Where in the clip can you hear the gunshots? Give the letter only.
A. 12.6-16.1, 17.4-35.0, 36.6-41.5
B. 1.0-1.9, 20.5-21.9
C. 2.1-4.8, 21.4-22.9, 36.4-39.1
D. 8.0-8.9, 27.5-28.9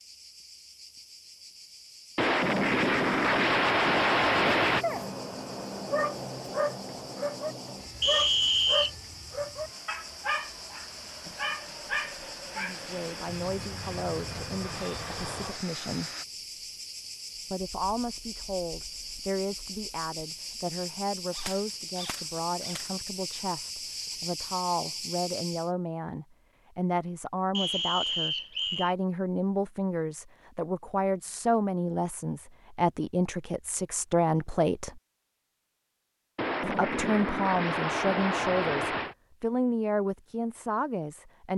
C.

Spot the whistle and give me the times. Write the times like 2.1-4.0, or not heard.
8.0-8.9, 27.5-28.9.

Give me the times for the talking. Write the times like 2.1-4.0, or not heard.
12.6-16.1, 17.4-35.0, 36.6-41.5.